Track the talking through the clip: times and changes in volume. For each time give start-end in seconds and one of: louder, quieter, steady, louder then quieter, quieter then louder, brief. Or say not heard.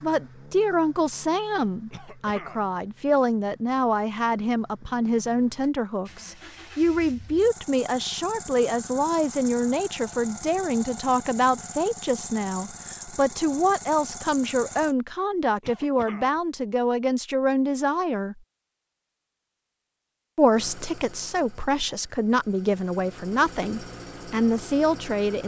0.0-18.4 steady
20.4-25.4 louder.